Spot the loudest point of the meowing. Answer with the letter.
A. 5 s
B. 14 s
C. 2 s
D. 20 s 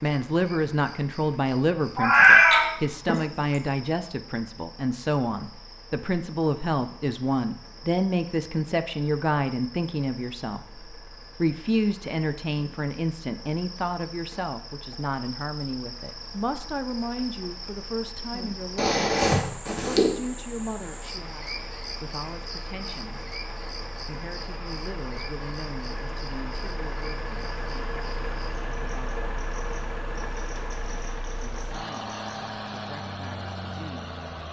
C.